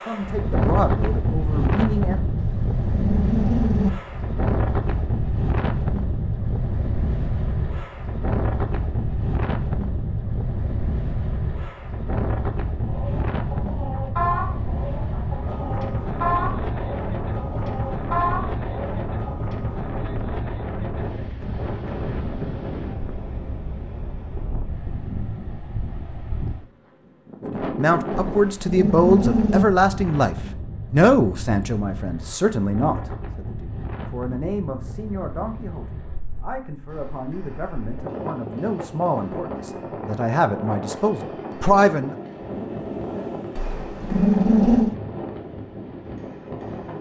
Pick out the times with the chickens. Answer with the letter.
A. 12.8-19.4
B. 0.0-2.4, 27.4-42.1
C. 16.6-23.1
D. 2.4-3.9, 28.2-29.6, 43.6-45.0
A.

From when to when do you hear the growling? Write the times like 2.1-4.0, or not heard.
2.4-3.9, 28.2-29.6, 43.6-45.0.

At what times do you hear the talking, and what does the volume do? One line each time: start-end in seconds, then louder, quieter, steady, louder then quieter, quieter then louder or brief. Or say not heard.
0.0-2.4 brief
27.4-42.1 quieter then louder.